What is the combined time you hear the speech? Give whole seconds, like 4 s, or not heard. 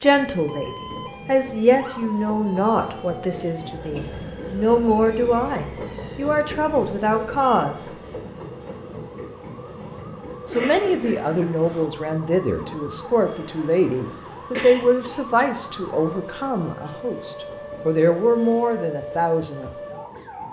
17 s.